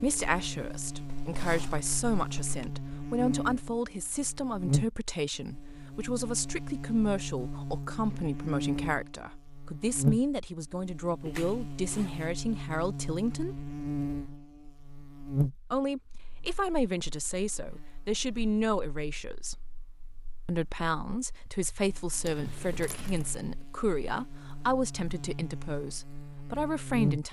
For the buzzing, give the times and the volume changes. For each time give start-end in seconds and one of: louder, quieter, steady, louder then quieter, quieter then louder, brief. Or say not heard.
0.0-27.2 quieter then louder.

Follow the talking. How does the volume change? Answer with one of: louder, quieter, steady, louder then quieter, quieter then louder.
steady.